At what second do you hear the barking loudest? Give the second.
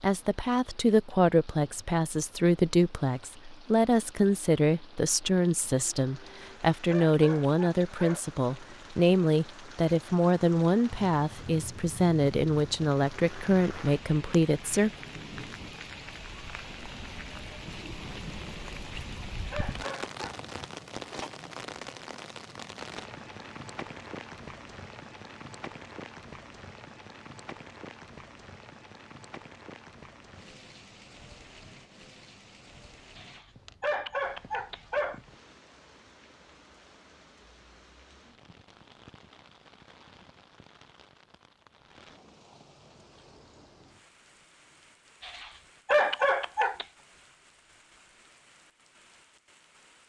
46 s.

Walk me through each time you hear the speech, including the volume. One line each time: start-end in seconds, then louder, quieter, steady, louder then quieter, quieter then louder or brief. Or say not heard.
0.0-14.9 steady.